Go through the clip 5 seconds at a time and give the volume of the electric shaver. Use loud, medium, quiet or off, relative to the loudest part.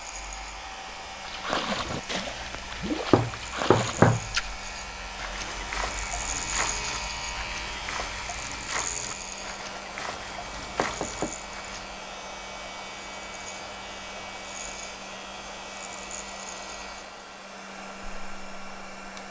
medium, loud, medium, medium.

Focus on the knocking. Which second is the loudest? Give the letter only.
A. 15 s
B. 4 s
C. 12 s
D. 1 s
B.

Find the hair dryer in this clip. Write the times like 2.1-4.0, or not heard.
0.0-19.2.